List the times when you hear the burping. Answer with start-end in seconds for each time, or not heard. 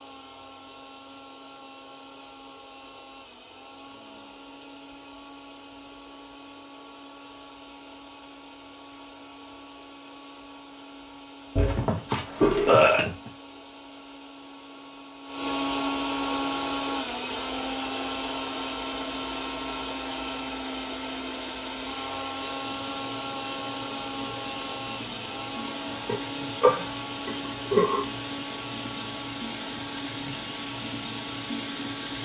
11.6-13.3, 26.1-28.1.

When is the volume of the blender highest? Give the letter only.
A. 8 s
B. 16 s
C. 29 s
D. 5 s
B.